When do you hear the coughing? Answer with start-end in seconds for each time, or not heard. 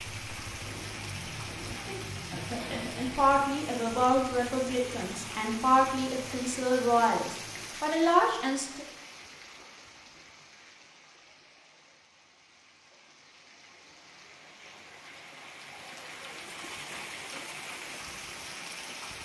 1.9-3.2.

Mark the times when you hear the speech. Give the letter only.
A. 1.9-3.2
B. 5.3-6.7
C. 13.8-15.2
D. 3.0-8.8
D.